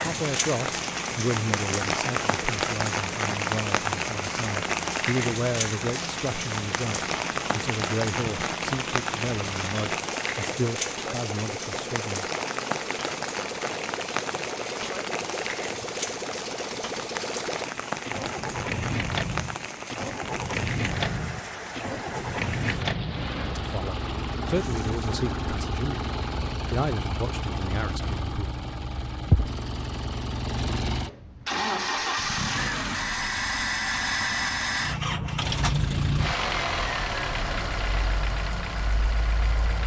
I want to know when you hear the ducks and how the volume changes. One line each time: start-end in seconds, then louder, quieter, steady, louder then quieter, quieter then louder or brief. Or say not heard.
not heard.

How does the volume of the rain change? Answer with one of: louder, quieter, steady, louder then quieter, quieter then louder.
quieter.